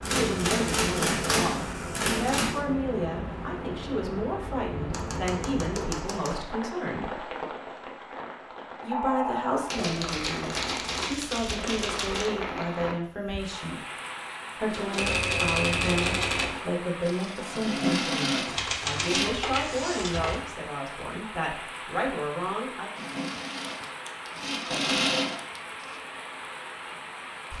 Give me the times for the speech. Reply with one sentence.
You can hear the speech from 0.1 to 7.2 s, from 8.8 to 13.8 s and from 14.6 to 22.9 s.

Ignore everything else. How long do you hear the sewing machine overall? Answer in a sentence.
The sewing machine can be heard for 8 seconds in total.